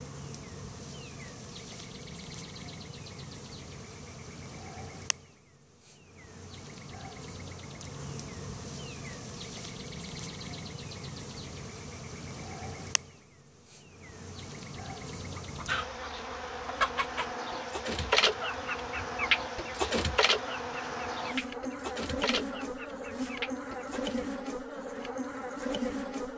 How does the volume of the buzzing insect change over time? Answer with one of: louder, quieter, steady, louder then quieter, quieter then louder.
louder.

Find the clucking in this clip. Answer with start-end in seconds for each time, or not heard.
15.4-24.2.